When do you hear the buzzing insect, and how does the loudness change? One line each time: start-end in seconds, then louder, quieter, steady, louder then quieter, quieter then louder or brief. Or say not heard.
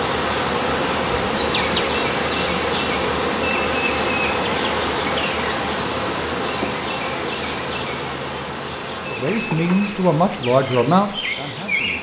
0.0-11.9 quieter.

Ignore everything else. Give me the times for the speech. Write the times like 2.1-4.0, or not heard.
9.1-11.9.